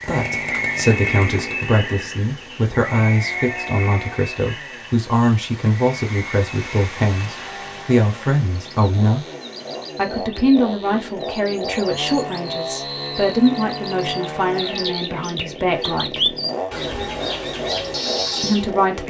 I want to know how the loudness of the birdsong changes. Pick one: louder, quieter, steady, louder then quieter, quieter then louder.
quieter then louder.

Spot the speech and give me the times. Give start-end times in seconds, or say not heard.
0.0-9.2, 9.9-16.4, 18.4-19.0.